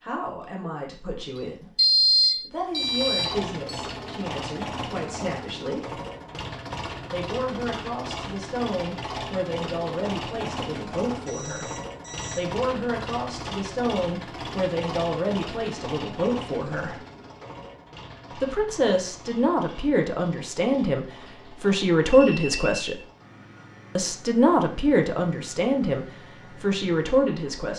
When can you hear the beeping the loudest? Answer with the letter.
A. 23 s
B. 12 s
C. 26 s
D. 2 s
D.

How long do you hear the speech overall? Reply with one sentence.
The speech can be heard for 24 seconds in total.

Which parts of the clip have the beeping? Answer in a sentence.
The beeping can be heard from 1.8 to 3.9 s, from 11.2 to 12.4 s and from 22.1 to 22.8 s.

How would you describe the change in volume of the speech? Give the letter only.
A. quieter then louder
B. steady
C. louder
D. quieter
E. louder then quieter
C.